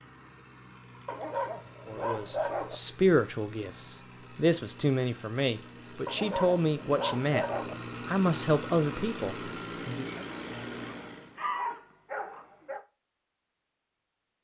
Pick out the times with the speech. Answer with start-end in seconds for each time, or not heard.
1.9-7.5, 8.1-10.2.